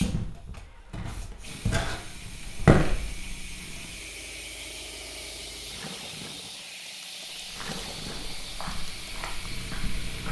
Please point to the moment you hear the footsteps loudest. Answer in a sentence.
The volume of the footsteps peaks at 3 seconds.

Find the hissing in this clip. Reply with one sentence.
You can hear the hissing from 0.0 to 10.2 s.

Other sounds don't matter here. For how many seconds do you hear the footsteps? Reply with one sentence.
The footsteps can be heard for 7 seconds in total.